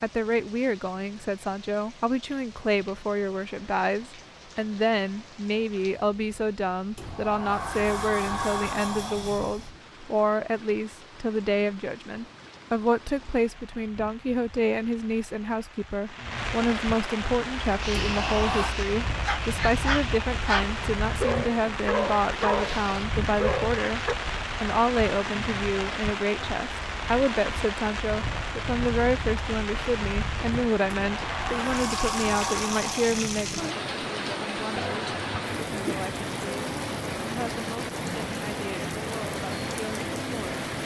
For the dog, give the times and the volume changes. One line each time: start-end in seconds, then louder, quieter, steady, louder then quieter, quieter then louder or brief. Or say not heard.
17.6-24.1 louder.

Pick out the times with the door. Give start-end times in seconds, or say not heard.
7.0-9.7, 17.9-18.8, 30.9-33.5.